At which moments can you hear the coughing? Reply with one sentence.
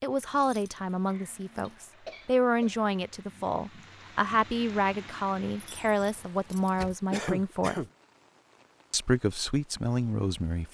You can hear the coughing from 1.1 to 2.9 s and from 7.1 to 7.9 s.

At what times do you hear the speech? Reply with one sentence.
The speech can be heard from 0.0 to 7.8 s and from 8.9 to 10.6 s.